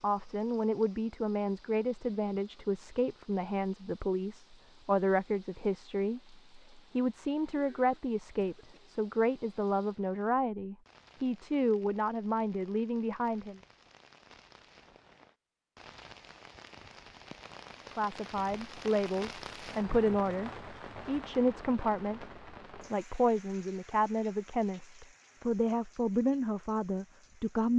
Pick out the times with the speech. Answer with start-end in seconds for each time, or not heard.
0.0-13.6, 17.9-27.7.